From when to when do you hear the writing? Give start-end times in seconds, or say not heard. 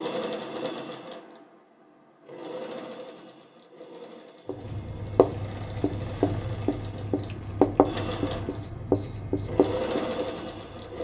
4.5-10.9.